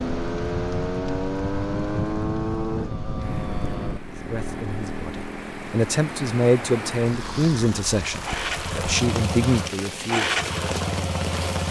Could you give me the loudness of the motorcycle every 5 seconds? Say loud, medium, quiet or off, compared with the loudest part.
loud, medium, loud.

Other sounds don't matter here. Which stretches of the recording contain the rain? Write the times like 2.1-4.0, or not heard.
0.0-11.6.